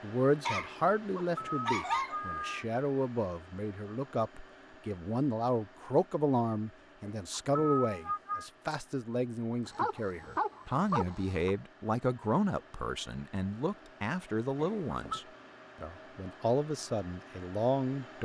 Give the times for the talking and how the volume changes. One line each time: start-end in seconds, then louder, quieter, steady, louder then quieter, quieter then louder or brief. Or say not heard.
0.0-18.2 steady.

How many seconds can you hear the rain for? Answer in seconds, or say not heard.
not heard.